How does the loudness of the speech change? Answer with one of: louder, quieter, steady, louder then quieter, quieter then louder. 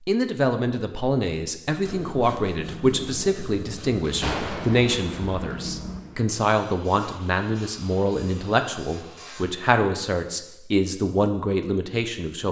steady.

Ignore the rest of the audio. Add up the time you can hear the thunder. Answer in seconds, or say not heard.
2 s.